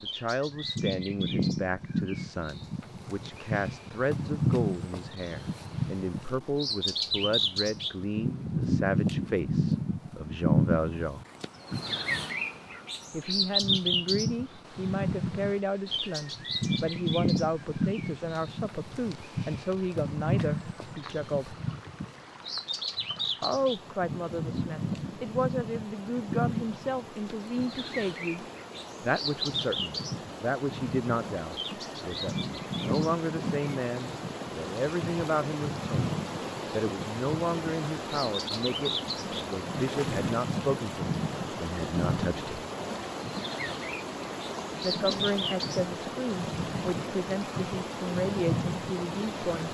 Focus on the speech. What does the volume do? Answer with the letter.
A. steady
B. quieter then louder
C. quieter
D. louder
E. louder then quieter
A.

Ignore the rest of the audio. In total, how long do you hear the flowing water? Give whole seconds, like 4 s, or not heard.
35 s.